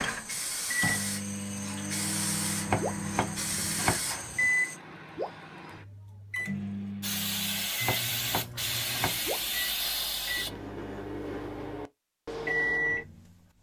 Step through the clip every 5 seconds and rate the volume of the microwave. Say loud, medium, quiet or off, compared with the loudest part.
loud, medium, loud.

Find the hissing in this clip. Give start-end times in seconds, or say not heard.
0.0-4.8, 7.0-10.5.